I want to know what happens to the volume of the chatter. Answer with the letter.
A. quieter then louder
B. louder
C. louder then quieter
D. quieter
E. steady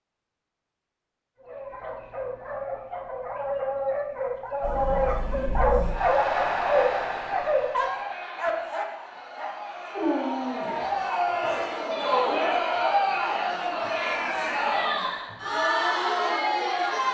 A.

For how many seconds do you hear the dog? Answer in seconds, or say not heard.
11 s.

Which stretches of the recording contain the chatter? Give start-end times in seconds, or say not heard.
4.6-17.0.